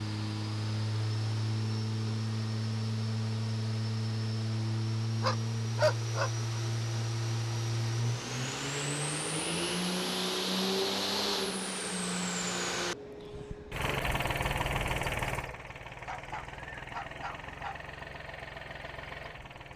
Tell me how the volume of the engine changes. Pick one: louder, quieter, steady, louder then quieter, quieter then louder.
quieter.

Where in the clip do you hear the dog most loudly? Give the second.
6 s.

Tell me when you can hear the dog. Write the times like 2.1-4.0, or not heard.
5.2-6.3, 16.1-17.8.